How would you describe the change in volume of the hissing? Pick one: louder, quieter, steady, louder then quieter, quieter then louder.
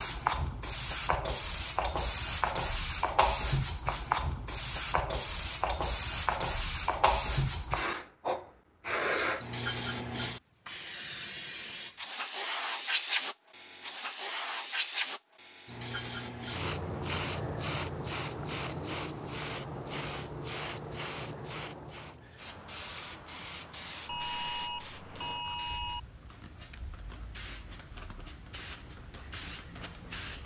quieter.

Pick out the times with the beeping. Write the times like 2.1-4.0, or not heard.
24.1-26.0.